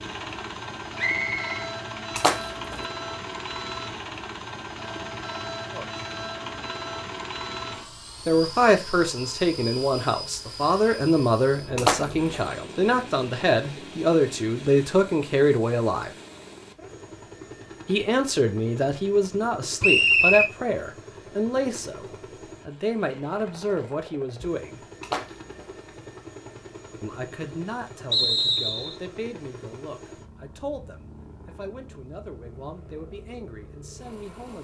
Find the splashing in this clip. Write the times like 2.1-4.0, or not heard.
2.1-2.9, 11.8-12.3, 25.0-25.8.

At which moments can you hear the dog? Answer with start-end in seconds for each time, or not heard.
not heard.